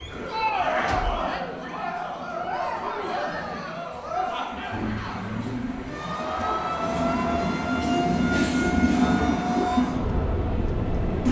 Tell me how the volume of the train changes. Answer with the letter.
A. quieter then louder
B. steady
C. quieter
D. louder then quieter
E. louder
E.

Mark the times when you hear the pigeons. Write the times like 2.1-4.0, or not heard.
not heard.